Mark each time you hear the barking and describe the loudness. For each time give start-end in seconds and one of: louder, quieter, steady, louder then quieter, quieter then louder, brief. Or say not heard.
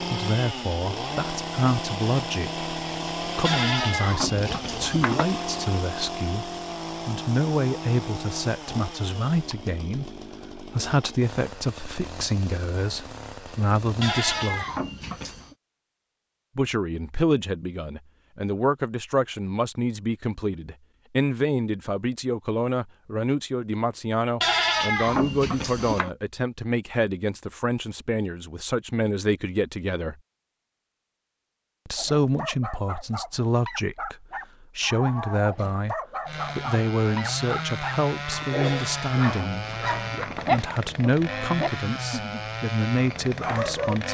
31.9-42.4 louder
43.1-44.0 brief.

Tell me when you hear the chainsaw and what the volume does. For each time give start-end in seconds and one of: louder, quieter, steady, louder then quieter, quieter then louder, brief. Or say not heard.
0.0-14.7 quieter
36.2-44.1 steady.